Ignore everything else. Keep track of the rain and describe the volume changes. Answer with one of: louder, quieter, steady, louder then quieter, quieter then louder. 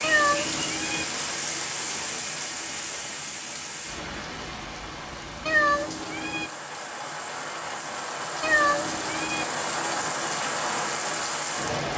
quieter then louder.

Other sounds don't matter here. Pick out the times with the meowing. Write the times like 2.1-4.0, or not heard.
0.0-1.1, 5.5-6.5, 8.4-9.4.